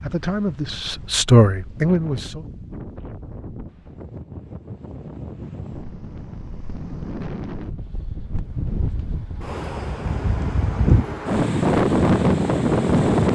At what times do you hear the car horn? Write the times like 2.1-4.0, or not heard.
not heard.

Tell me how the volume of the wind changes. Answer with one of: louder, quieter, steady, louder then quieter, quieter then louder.
louder.